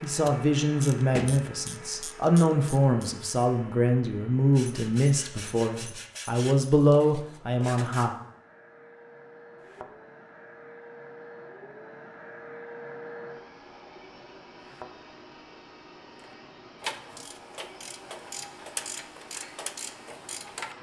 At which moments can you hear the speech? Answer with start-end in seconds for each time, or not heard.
0.0-8.2.